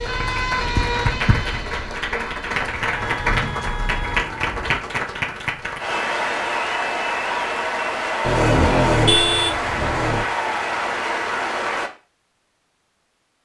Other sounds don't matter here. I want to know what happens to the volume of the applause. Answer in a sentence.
The volume of the applause stays about the same.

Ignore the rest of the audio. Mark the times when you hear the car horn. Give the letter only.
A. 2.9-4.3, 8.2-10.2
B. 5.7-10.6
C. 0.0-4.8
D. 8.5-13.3
A.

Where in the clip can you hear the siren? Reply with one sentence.
The siren can be heard from 0.0 to 4.8 s.